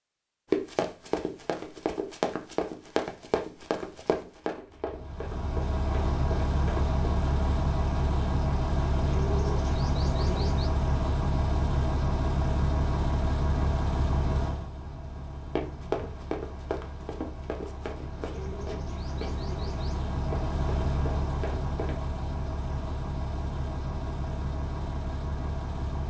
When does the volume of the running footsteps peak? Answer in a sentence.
The loudest moment of the running footsteps is at 1 second.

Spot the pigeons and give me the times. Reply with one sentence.
You can hear the pigeons from 8.9 to 10.7 s and from 18.2 to 20.1 s.